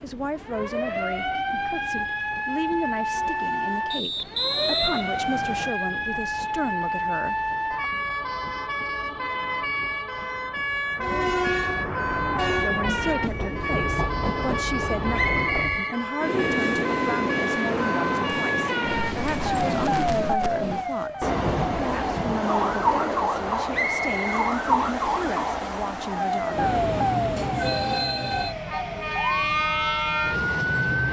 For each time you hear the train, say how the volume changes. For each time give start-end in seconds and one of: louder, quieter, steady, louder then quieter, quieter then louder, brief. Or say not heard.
0.0-31.0 louder.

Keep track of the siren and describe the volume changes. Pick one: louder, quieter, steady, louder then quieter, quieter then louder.
steady.